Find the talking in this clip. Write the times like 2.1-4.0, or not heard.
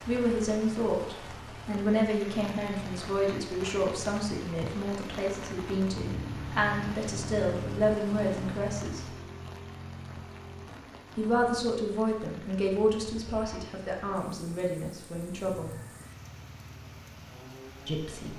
0.1-9.2, 11.2-15.8, 17.9-18.3.